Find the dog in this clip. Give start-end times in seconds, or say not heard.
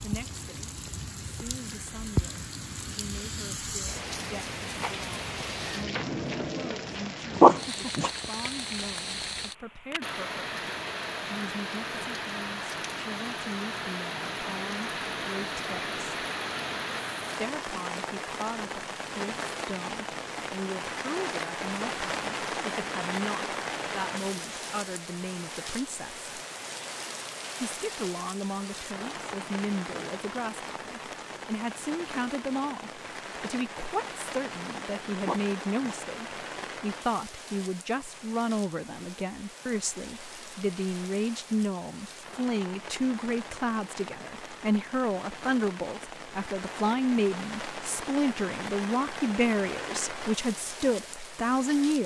7.3-8.1, 35.2-36.0.